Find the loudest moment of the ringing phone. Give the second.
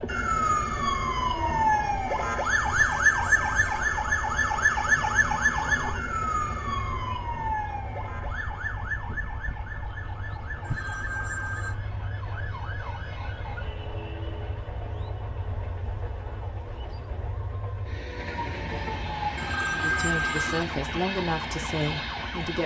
20 s.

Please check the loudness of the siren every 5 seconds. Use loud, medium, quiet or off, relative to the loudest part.
loud, medium, quiet, quiet, quiet.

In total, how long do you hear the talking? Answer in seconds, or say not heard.
3 s.